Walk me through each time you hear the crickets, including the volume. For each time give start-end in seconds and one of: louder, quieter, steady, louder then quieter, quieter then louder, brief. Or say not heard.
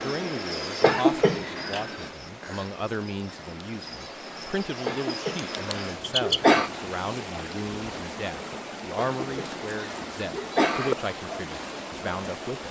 0.0-6.9 quieter then louder.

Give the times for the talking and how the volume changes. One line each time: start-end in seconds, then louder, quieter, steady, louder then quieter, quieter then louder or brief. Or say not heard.
0.0-12.6 steady.